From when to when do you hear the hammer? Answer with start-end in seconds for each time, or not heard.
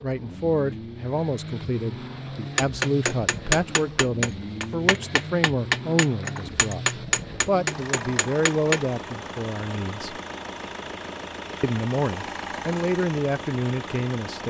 2.5-8.8.